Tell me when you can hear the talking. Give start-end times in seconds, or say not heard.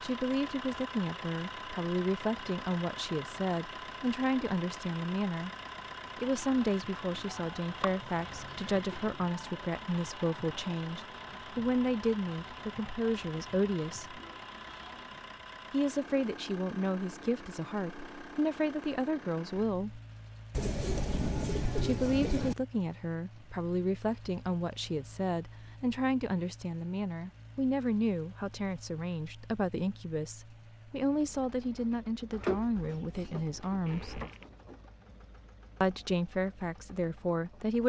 0.0-5.5, 6.2-14.2, 15.7-20.0, 21.8-34.2, 35.8-37.8.